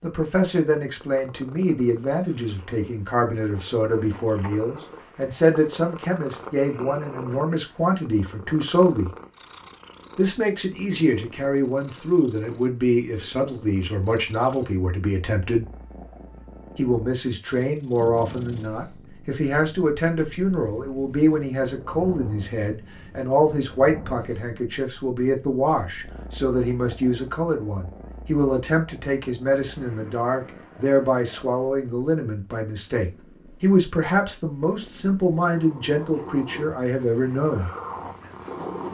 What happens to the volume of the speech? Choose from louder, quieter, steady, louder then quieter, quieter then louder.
steady.